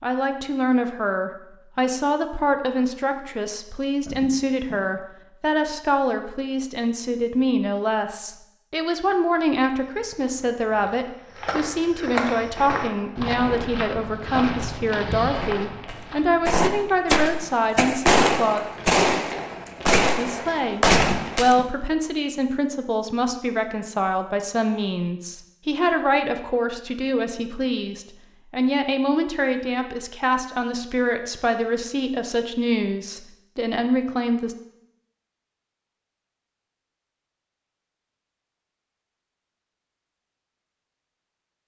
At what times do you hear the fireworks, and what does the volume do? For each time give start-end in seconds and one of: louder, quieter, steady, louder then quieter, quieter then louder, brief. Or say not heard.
12.3-21.6 louder.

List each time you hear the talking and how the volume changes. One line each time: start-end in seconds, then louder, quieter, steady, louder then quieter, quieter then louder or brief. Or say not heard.
0.0-18.6 steady
20.1-34.5 steady.